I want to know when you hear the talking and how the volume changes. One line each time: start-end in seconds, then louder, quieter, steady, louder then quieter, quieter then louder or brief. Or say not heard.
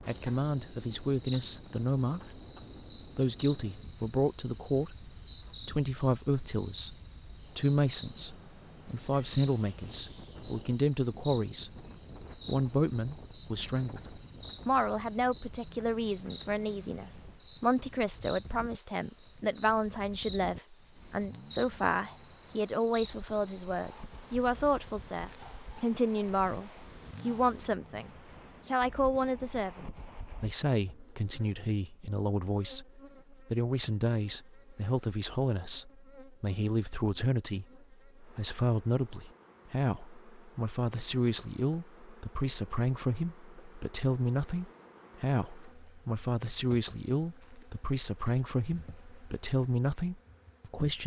0.1-2.2 brief
3.1-11.8 steady
12.4-51.0 steady.